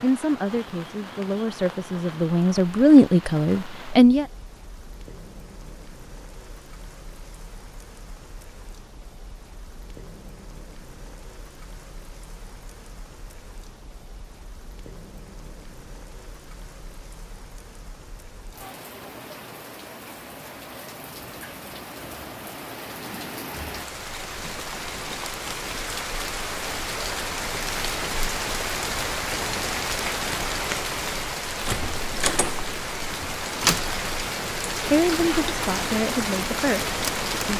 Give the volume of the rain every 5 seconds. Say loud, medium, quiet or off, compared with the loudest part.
quiet, quiet, quiet, quiet, medium, loud, loud, loud.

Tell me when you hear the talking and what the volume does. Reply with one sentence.
You can hear the talking from 0.0 to 4.2 s, getting louder then quieter; and briefly from 34.8 to 37.5 s.